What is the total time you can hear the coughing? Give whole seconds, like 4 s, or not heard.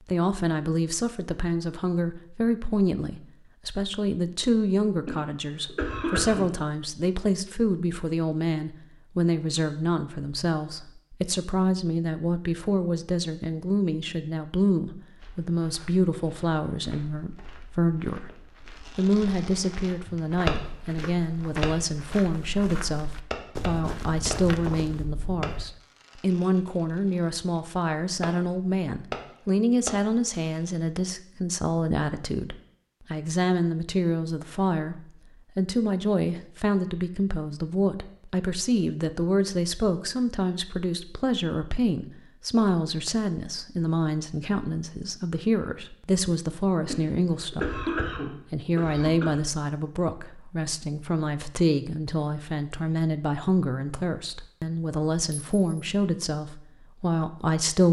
4 s.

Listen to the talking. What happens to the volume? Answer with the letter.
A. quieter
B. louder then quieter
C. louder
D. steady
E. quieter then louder
D.